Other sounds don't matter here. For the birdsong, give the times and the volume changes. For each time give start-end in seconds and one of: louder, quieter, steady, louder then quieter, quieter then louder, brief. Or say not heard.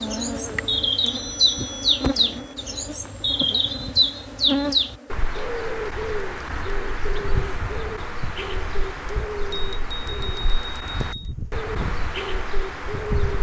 0.0-13.3 quieter.